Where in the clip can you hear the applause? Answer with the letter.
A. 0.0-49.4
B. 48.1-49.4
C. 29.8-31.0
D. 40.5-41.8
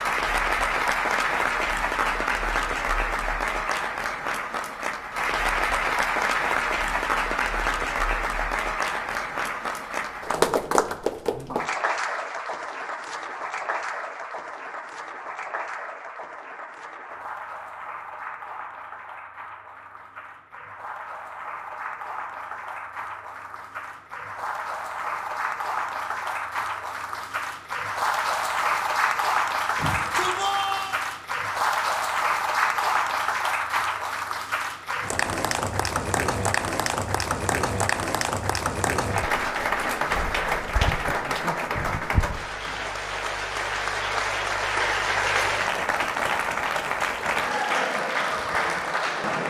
A.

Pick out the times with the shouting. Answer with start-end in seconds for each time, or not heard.
29.8-31.0.